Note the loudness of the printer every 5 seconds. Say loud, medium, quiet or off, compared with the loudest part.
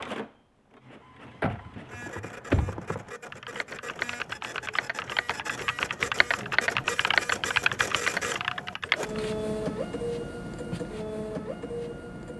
medium, loud, loud.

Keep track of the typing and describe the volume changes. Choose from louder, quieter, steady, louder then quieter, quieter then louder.
louder.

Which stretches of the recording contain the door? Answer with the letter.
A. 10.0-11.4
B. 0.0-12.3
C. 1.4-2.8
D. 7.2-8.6
C.